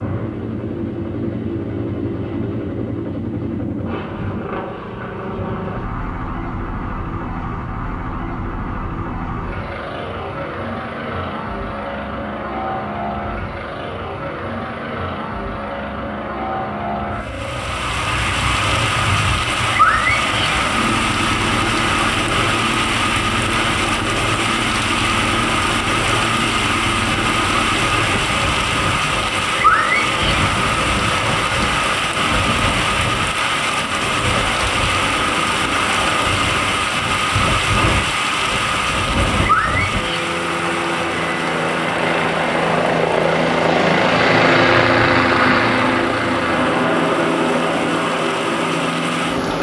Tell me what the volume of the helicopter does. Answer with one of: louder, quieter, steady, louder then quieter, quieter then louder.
louder.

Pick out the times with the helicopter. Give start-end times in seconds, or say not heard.
0.0-49.5.